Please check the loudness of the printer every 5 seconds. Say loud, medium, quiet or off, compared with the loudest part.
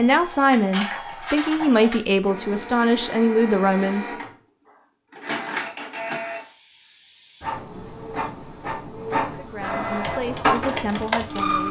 medium, medium, loud.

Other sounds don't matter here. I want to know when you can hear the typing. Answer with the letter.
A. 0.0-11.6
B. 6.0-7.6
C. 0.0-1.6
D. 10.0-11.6
D.